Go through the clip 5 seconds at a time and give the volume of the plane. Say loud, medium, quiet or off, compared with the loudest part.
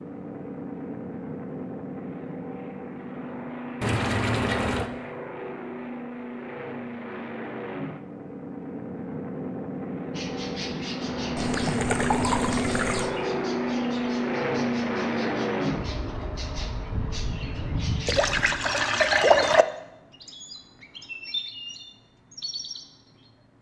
medium, medium, loud, loud, off.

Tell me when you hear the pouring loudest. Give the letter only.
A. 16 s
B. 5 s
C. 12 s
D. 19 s
D.